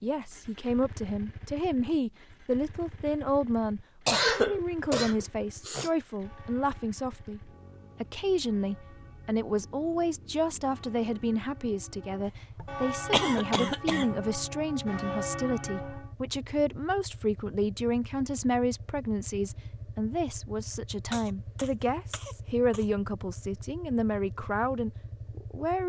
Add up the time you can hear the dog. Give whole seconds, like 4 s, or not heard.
not heard.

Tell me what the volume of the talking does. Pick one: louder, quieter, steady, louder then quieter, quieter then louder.
steady.